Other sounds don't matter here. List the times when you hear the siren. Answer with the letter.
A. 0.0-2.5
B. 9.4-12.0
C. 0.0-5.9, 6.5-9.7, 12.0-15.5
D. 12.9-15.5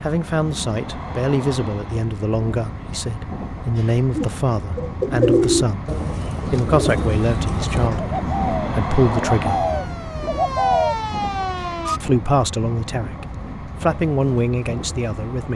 B.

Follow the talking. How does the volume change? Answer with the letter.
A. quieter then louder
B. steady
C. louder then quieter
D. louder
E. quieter
B.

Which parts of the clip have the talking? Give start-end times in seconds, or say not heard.
0.0-5.9, 6.5-9.7, 12.0-15.5.